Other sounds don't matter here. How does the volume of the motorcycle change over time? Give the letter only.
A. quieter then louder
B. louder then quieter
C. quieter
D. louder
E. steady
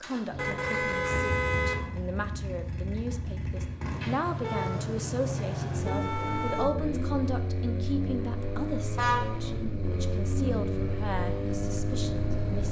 D.